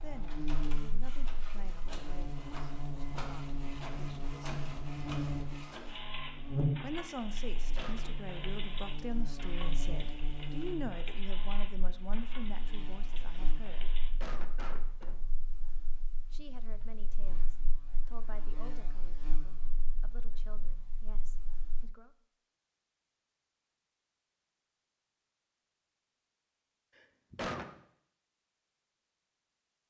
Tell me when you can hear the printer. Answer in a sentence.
The printer can be heard from 0.0 to 14.1 s.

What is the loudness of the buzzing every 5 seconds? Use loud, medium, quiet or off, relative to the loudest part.
loud, loud, medium, quiet, quiet, off.